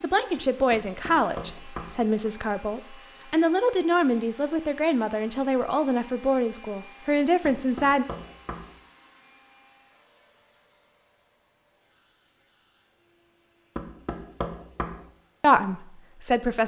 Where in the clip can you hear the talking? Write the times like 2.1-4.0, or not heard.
0.0-8.1, 15.4-16.6.